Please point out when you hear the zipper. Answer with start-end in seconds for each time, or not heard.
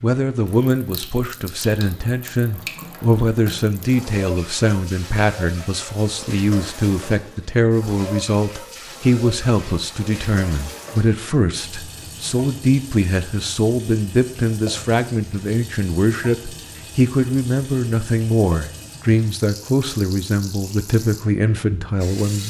not heard.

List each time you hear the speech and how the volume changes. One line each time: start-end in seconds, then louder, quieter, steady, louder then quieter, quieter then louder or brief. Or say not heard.
0.0-22.4 steady.